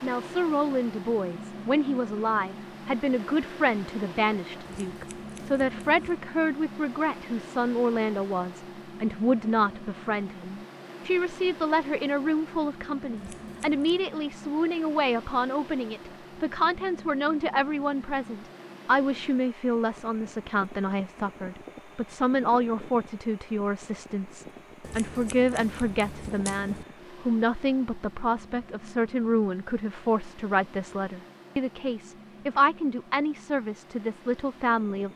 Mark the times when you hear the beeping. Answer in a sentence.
You can't hear the beeping here.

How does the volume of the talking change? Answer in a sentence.
The volume of the talking stays about the same.